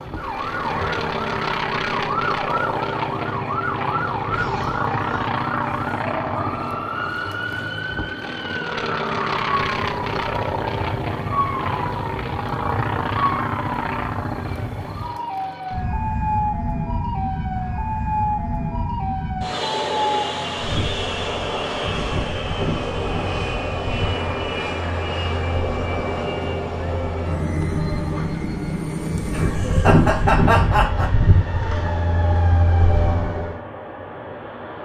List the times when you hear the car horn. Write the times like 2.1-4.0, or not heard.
not heard.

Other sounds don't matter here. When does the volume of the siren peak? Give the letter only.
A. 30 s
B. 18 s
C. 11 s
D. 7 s
A.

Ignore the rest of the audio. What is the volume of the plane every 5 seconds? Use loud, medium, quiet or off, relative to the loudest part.
loud, loud, loud, loud, loud, loud, medium.